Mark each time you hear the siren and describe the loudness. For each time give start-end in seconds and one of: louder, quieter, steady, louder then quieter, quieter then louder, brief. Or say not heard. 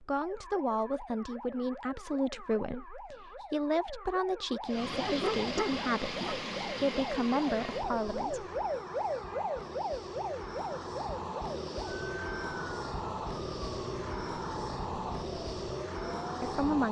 0.0-16.8 louder then quieter.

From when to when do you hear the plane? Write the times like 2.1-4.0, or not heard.
4.6-16.8.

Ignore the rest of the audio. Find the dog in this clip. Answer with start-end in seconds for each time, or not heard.
5.0-6.4.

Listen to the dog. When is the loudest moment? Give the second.
5 s.